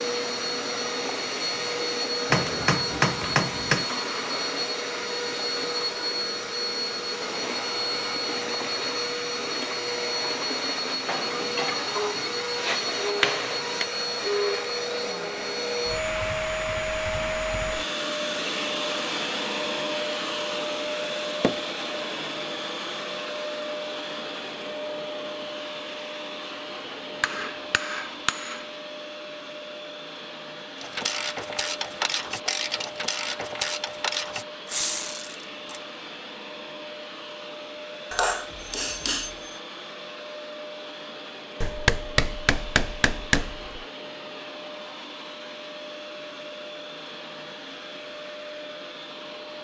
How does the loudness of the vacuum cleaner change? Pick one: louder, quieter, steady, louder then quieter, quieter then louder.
quieter.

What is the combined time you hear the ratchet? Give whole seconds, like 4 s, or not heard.
5 s.